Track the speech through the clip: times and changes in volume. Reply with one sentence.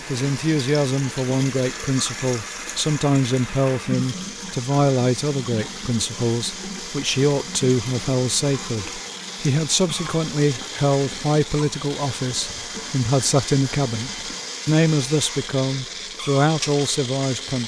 The speech can be heard from 0.1 to 17.6 s, at a steady volume.